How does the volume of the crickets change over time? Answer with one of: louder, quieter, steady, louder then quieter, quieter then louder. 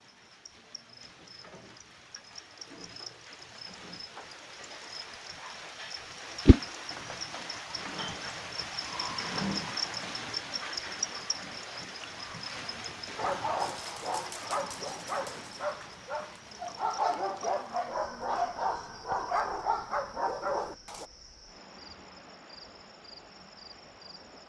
louder then quieter.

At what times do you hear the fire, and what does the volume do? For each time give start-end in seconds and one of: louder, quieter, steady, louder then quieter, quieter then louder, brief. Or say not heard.
not heard.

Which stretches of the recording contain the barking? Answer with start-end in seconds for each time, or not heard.
13.2-21.1.